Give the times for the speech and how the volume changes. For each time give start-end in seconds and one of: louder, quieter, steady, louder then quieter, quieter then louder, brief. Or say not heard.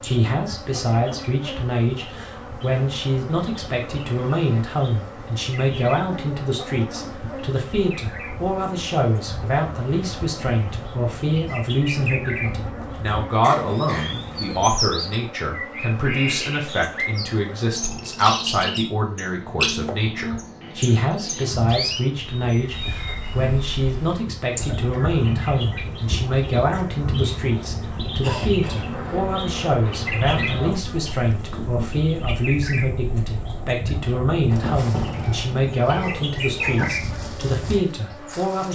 0.0-38.6 steady.